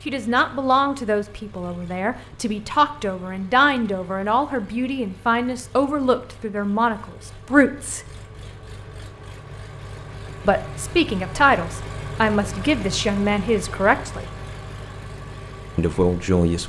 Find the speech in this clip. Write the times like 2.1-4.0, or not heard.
0.1-8.0, 10.4-14.3, 15.8-16.6.